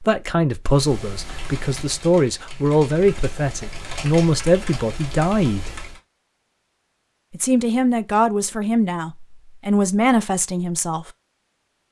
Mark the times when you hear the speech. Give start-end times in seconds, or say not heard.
0.0-5.8, 7.3-11.1.